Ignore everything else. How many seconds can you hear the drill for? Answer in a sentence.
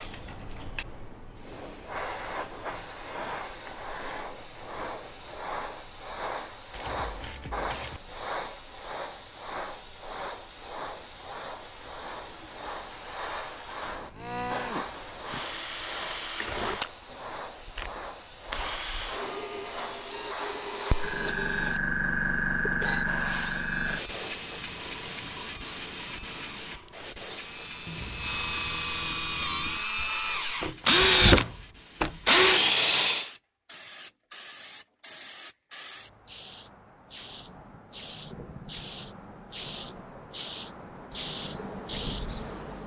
The drill can be heard for 19 seconds in total.